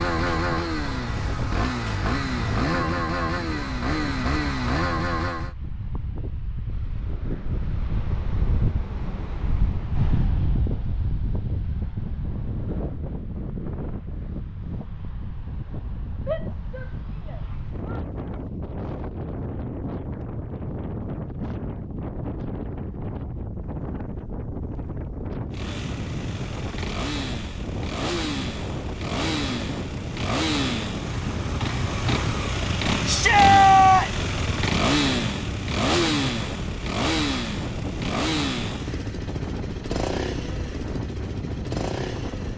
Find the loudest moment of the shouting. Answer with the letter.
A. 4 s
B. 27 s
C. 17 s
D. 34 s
D.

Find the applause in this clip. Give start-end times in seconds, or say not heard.
not heard.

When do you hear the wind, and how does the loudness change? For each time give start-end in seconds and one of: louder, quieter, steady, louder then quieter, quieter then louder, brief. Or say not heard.
0.1-42.5 steady.